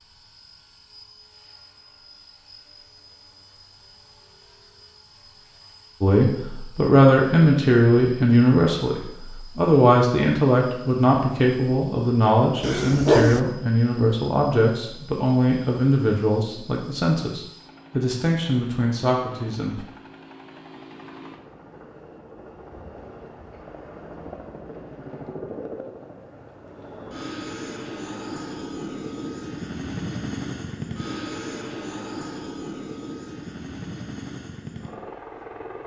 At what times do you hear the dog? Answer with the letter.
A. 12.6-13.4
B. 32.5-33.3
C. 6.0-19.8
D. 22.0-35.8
A.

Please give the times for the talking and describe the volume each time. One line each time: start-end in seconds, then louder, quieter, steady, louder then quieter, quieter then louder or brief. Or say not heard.
6.0-19.8 quieter.